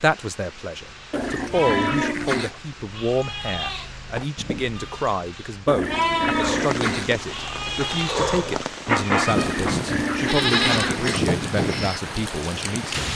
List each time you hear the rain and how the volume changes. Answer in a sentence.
The rain can be heard from 0.0 to 13.1 s, getting louder.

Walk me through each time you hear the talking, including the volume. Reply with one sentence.
You can hear the talking from 0.0 to 13.1 s, at a steady volume.